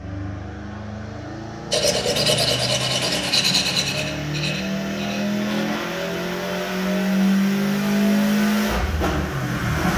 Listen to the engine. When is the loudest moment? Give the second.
8 s.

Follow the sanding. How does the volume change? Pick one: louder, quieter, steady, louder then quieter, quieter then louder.
quieter.